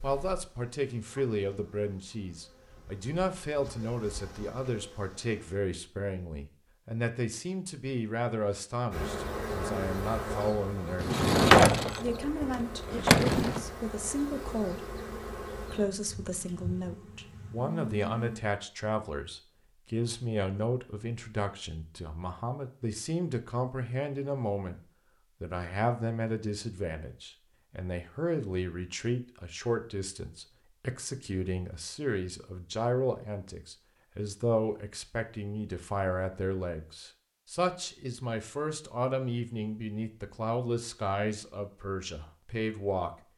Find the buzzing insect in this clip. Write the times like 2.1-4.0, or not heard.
0.0-5.5, 8.9-18.4.